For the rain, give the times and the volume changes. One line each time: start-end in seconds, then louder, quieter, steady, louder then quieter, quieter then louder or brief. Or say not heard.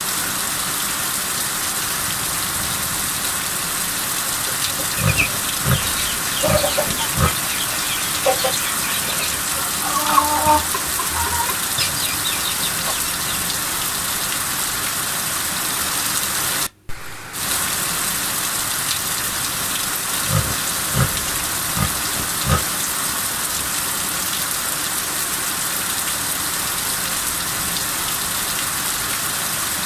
0.0-29.8 steady.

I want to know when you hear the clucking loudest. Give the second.
10 s.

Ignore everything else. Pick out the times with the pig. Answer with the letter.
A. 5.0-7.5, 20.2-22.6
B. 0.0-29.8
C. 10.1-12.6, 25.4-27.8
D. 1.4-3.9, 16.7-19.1
A.